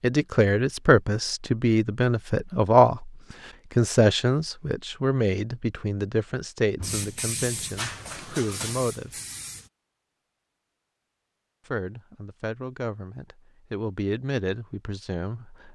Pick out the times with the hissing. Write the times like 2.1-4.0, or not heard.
6.8-9.7.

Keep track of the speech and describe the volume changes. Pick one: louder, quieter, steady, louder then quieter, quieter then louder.
quieter.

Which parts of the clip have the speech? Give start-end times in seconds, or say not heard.
0.0-3.1, 3.8-9.1, 11.7-15.7.